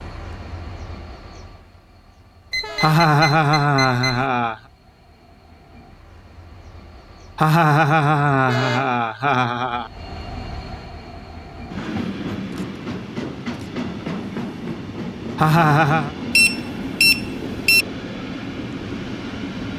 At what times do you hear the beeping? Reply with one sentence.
The beeping can be heard from 2.5 to 4.2 s and from 16.4 to 17.9 s.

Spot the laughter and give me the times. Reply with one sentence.
You can hear the laughter from 2.8 to 4.6 s, from 7.3 to 9.9 s and from 15.3 to 16.1 s.